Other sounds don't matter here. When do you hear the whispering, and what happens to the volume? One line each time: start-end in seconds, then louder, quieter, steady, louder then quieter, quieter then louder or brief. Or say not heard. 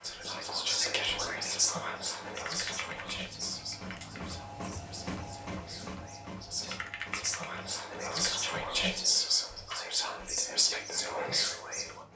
0.0-12.1 quieter then louder.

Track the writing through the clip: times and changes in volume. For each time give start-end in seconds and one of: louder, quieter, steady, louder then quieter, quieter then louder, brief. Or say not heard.
not heard.